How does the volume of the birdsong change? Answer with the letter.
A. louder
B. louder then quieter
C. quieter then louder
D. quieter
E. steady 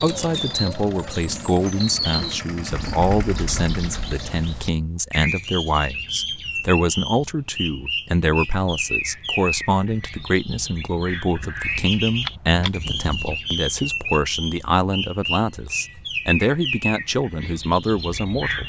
E.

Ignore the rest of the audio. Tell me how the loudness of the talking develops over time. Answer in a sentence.
The volume of the talking stays about the same.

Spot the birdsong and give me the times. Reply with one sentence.
The birdsong can be heard from 0.0 to 18.6 s.